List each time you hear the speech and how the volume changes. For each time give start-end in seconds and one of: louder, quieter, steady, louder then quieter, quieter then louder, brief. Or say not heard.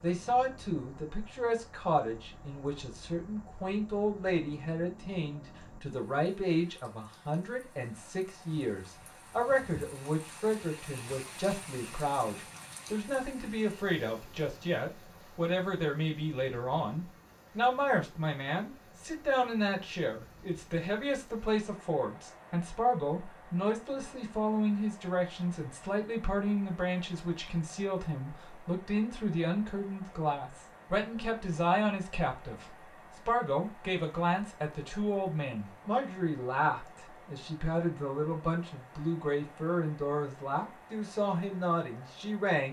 0.0-42.6 steady.